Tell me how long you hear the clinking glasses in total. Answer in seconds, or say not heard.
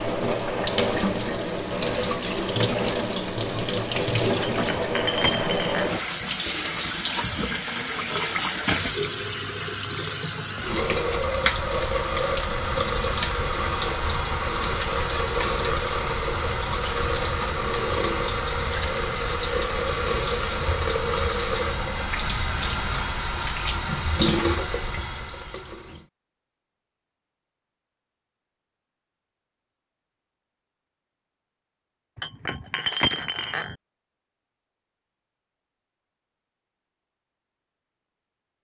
3 s.